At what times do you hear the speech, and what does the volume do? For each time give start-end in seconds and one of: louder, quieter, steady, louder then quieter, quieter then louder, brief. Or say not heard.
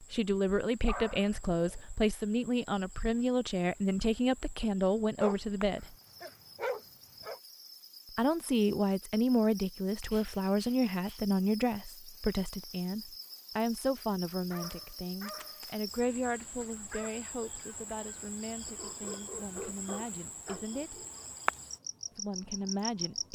0.0-6.0 steady
8.2-21.0 quieter
22.1-23.3 brief.